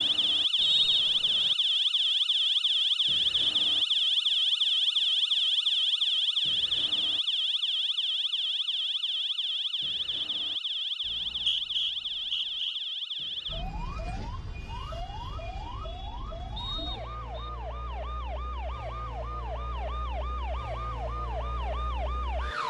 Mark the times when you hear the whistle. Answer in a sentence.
The whistle can be heard from 0.6 to 1.6 s, from 11.1 to 12.8 s and from 16.6 to 17.5 s.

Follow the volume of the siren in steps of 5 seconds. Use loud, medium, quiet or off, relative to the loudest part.
loud, loud, medium, quiet, medium.